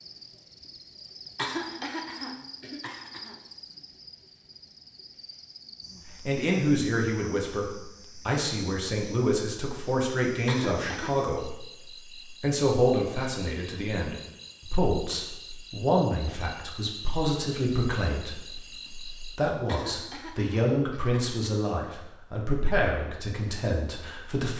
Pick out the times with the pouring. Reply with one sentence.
You can't hear the pouring here.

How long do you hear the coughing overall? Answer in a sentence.
You can hear the coughing for 5 seconds altogether.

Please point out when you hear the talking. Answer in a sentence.
You can hear the talking from 6.2 to 11.7 s and from 12.4 to 24.5 s.